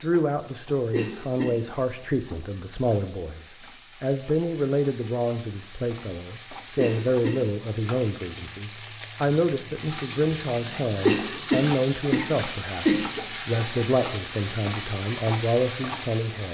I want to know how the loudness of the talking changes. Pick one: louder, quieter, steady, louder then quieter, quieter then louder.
steady.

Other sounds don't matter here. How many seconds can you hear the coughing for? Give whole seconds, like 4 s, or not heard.
4 s.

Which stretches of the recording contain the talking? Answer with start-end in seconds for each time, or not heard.
0.0-16.4.